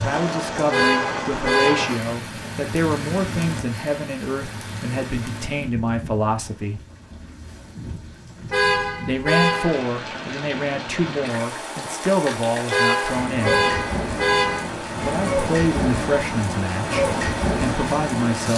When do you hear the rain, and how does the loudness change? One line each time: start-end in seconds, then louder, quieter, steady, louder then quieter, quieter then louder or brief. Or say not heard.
0.0-18.5 quieter then louder.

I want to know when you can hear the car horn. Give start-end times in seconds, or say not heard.
0.7-2.0, 8.5-9.8, 12.7-14.7.